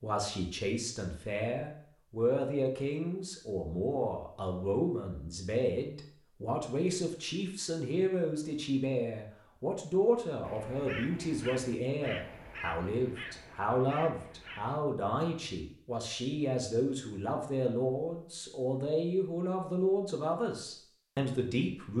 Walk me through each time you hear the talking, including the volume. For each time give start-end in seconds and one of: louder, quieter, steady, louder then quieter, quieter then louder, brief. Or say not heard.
0.0-21.9 steady.